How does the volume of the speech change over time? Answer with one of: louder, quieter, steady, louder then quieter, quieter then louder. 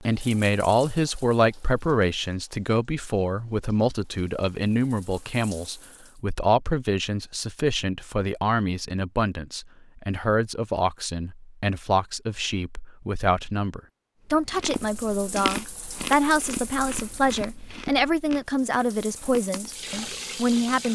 steady.